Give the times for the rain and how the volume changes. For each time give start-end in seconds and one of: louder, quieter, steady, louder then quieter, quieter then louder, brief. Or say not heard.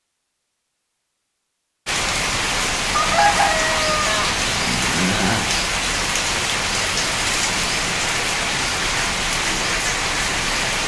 1.9-10.8 steady.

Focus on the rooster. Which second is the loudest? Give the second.
3 s.